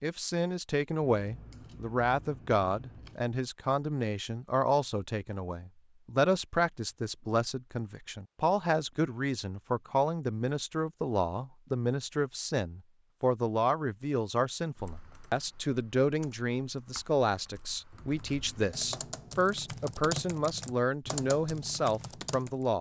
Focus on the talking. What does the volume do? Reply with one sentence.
The volume of the talking stays about the same.